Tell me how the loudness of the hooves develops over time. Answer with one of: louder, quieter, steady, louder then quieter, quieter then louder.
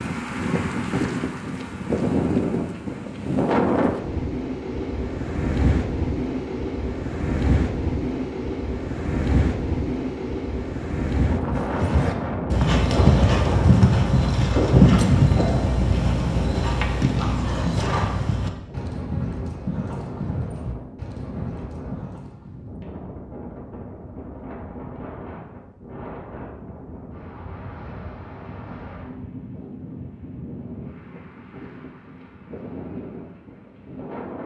quieter.